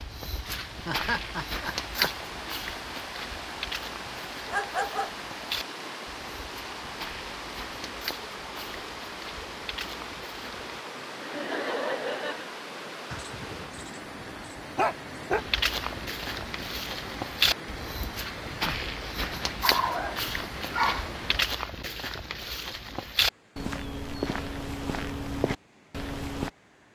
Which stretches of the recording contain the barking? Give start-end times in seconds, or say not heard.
4.5-5.2, 13.1-15.4, 19.6-21.1.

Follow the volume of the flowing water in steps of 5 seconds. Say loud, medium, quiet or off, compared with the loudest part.
loud, loud, loud, loud, loud, quiet.